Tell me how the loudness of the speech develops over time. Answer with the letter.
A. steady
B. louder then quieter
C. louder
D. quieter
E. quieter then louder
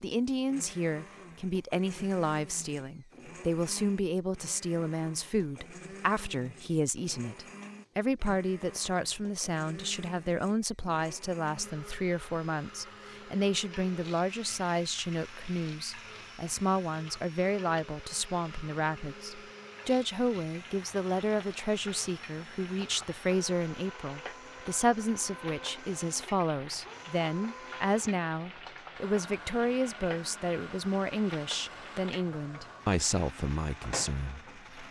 A.